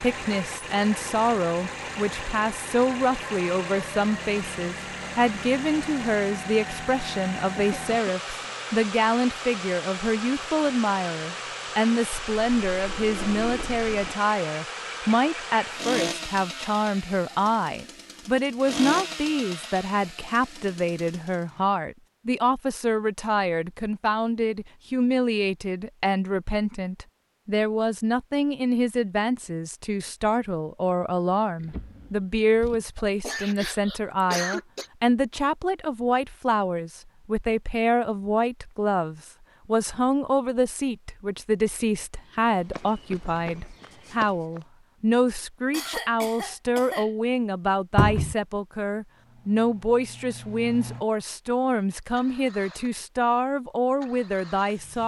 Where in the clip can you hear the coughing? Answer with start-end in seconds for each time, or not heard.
7.5-8.5, 33.0-34.9, 45.7-47.1.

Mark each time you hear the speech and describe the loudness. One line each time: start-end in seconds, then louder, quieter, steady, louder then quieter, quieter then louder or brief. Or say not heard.
0.0-55.0 steady.